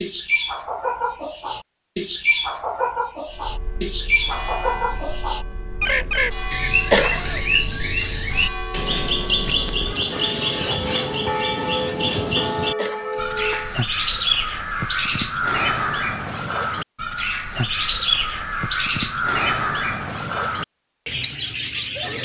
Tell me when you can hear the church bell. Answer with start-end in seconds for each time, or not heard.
3.2-13.8.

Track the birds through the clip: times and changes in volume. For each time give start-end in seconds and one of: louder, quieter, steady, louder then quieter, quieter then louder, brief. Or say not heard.
0.0-22.2 steady.